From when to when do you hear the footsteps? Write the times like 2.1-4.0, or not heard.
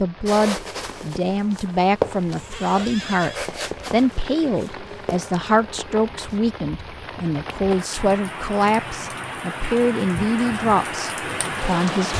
0.2-6.4.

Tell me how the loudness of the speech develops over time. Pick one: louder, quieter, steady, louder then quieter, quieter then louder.
steady.